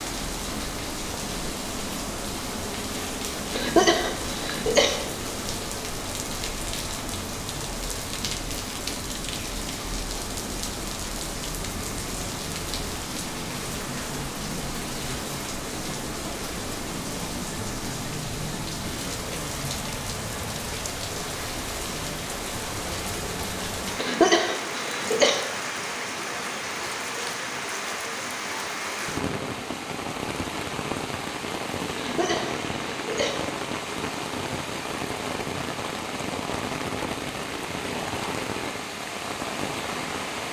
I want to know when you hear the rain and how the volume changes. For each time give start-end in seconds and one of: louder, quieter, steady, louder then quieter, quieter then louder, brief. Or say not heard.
0.0-40.4 steady.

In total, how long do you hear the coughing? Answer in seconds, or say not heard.
4 s.